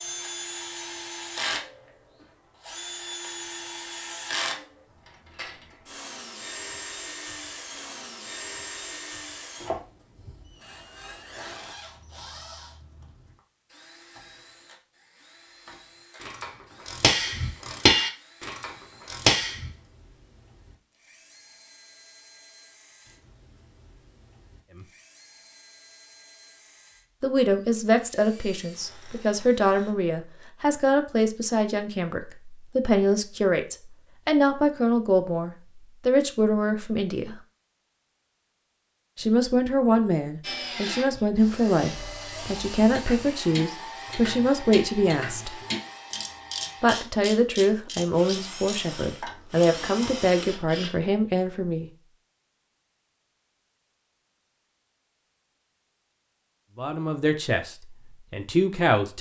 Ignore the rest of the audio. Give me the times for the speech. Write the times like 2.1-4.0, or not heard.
27.2-37.4, 39.1-45.5, 46.8-51.9, 56.8-59.1.